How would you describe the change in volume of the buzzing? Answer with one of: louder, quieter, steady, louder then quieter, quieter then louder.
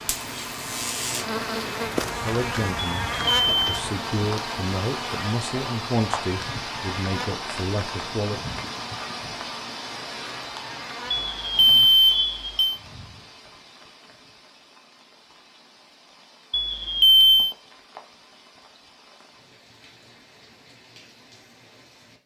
quieter.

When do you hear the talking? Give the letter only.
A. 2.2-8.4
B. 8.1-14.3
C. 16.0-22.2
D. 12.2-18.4
A.